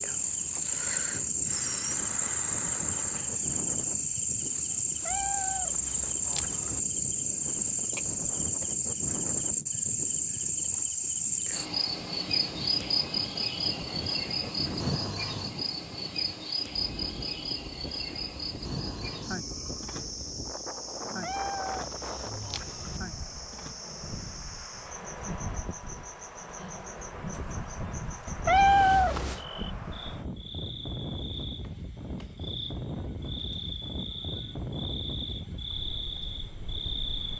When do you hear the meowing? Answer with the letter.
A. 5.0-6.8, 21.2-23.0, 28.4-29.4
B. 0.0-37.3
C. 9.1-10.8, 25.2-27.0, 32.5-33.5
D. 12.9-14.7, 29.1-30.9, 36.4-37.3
A.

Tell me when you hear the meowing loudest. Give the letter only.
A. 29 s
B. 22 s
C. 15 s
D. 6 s
A.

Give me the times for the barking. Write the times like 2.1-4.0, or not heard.
not heard.